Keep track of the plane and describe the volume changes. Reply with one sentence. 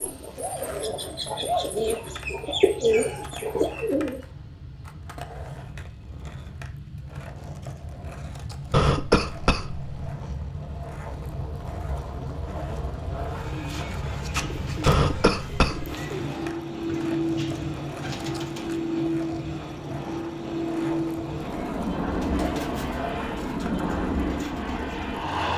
The loudness of the plane goes up.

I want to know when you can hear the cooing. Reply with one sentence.
The cooing can be heard from 0.0 to 4.2 s, from 13.2 to 18.8 s and from 22.1 to 25.2 s.